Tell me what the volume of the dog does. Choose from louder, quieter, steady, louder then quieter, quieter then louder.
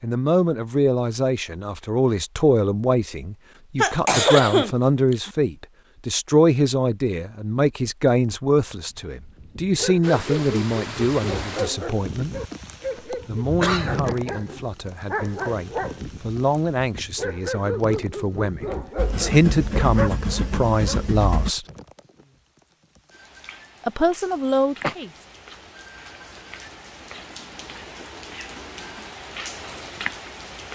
steady.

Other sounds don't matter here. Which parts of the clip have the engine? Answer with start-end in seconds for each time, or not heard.
18.9-21.6.